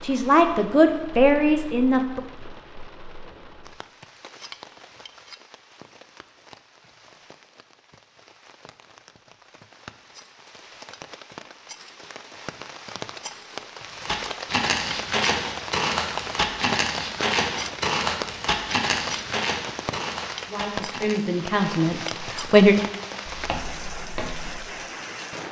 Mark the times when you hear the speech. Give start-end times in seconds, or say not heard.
0.0-2.2, 20.4-22.8.